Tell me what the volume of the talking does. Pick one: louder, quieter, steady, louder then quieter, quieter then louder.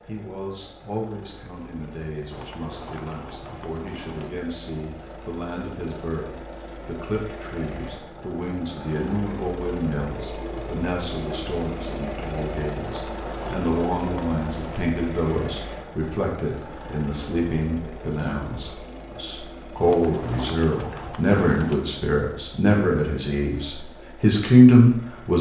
louder.